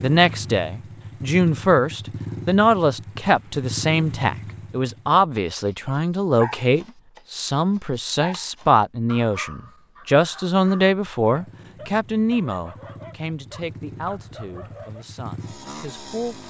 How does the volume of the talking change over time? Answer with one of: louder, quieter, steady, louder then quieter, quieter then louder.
quieter.